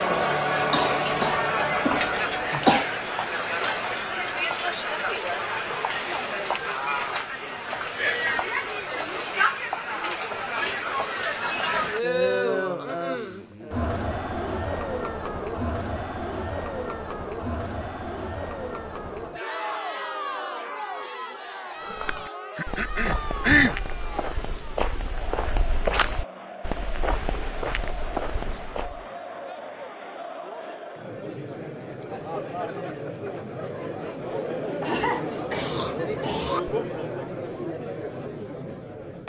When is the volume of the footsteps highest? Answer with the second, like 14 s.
26 s.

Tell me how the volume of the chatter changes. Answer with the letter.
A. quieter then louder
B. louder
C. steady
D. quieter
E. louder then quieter
A.